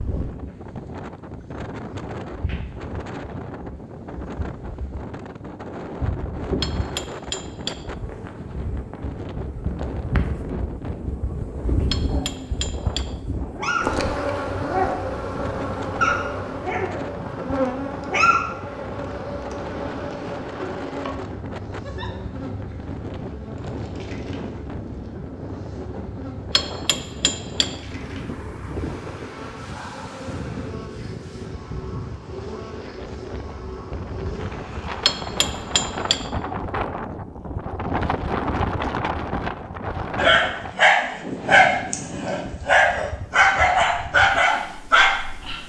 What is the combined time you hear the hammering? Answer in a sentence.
You can hear the hammering for 5 seconds altogether.